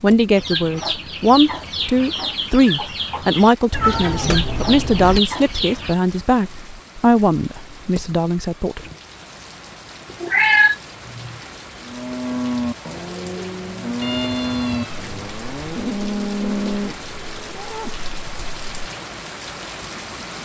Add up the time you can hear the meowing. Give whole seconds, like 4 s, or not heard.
5 s.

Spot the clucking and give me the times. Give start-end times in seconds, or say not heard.
0.3-6.0.